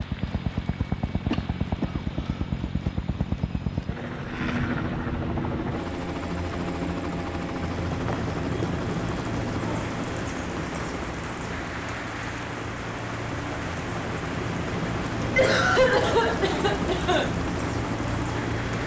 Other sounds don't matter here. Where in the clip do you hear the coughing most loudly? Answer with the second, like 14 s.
16 s.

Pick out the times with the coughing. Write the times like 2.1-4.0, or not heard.
1.3-2.9, 15.3-17.4.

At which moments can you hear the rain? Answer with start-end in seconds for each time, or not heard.
0.0-18.8.